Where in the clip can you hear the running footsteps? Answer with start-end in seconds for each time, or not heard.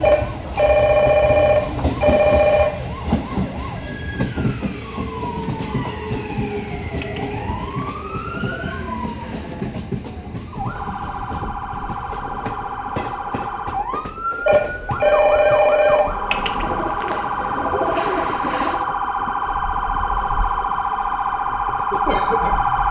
not heard.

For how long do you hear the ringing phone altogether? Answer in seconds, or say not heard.
4 s.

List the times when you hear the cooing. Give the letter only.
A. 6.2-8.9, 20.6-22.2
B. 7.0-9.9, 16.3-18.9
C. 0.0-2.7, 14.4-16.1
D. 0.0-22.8
B.